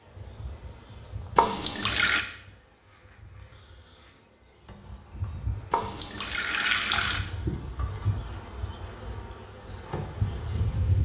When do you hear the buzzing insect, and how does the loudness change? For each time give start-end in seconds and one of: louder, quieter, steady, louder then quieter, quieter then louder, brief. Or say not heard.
0.1-11.0 quieter then louder.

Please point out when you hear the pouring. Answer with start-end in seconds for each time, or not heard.
1.4-2.2, 5.7-7.2.